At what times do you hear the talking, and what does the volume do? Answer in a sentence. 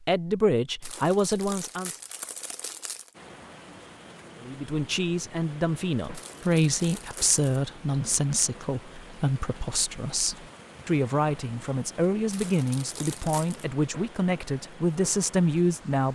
You can hear the talking briefly from 0.0 to 1.9 s; and from 4.4 to 16.1 s, at a steady volume.